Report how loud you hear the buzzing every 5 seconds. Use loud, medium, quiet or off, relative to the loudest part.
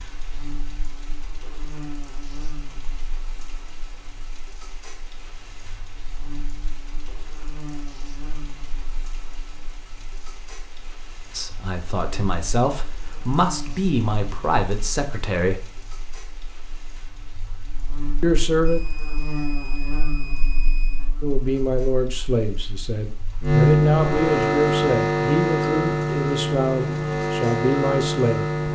quiet, quiet, quiet, quiet, loud, loud.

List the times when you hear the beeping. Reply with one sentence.
The beeping can be heard from 18.6 to 21.1 s.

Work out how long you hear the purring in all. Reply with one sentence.
The purring can't be heard in this clip.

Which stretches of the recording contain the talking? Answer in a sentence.
The talking can be heard from 11.3 to 15.8 s, from 18.2 to 18.8 s and from 21.2 to 28.4 s.